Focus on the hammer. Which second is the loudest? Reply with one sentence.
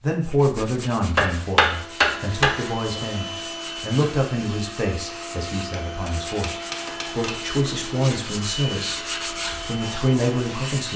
The volume of the hammer peaks at 2 seconds.